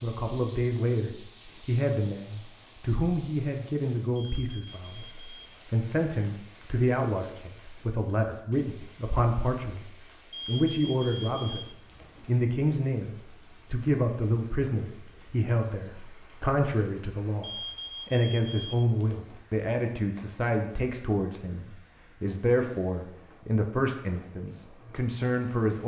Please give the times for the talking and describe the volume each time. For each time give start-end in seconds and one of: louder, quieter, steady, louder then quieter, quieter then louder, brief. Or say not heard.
0.0-25.8 steady.